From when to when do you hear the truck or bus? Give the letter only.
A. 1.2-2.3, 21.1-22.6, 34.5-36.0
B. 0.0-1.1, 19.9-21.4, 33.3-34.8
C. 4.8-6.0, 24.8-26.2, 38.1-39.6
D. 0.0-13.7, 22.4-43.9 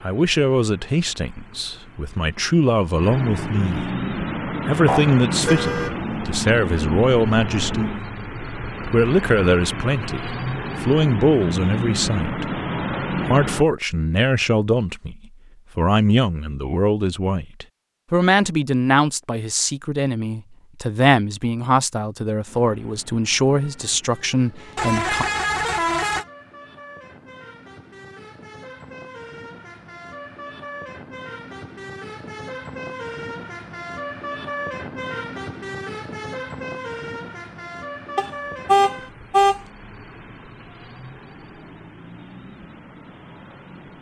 D.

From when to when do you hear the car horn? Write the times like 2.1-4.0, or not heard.
4.8-6.0, 24.8-26.2, 38.1-39.6.